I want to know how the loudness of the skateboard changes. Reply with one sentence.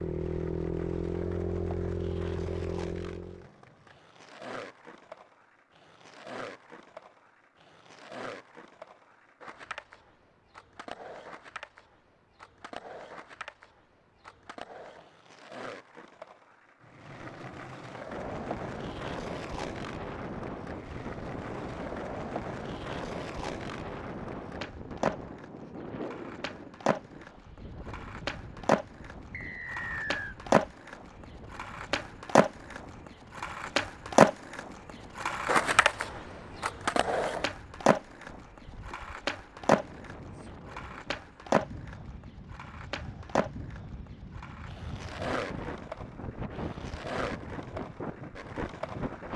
The volume of the skateboard goes up, then down.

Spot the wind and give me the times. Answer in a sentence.
You can hear the wind from 18.1 to 49.3 s.